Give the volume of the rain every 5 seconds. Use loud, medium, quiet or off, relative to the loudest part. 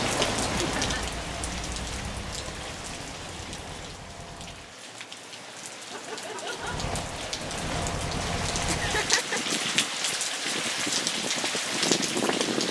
medium, medium, loud.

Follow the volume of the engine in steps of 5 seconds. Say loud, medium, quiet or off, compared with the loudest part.
medium, loud, off.